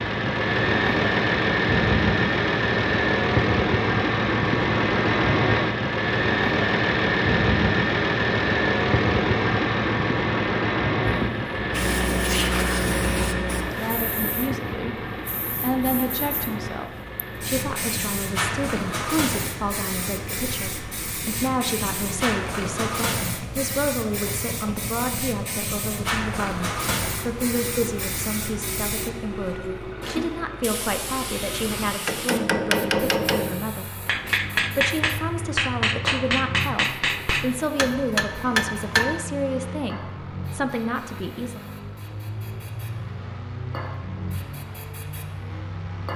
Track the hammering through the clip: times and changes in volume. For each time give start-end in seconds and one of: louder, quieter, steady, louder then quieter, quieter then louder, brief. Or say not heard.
32.0-39.2 steady.